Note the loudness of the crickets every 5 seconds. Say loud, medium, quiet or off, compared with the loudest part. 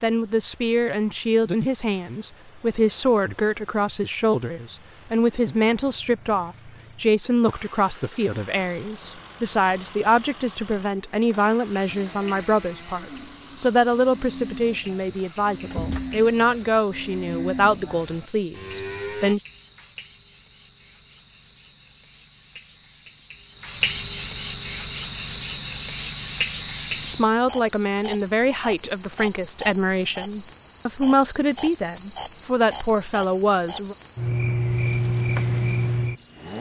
quiet, quiet, quiet, quiet, medium, loud, loud, loud.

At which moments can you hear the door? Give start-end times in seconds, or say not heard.
15.3-16.2.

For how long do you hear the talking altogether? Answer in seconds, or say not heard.
26 s.